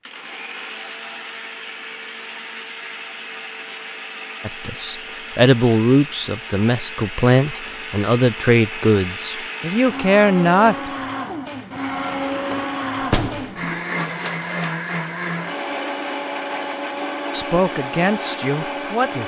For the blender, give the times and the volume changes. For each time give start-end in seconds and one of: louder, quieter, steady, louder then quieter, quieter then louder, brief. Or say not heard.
0.0-19.2 louder.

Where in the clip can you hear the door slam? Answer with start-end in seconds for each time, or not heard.
13.0-13.8.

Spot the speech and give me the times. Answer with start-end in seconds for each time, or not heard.
4.5-10.9, 17.3-19.2.